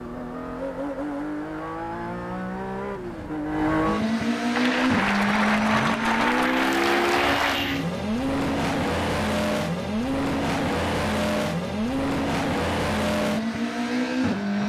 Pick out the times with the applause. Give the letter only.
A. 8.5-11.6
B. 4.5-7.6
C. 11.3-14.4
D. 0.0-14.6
B.